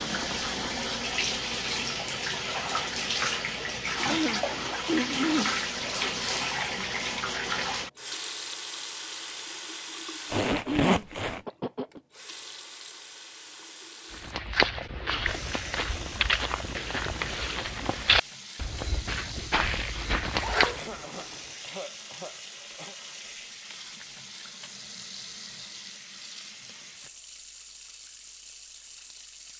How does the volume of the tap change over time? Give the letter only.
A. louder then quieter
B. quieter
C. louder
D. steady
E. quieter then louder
B.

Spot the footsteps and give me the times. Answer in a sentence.
The footsteps can be heard from 14.1 to 20.9 s.